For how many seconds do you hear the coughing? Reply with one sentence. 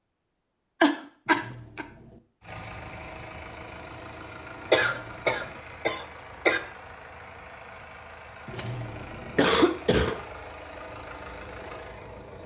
You can hear the coughing for 4 seconds altogether.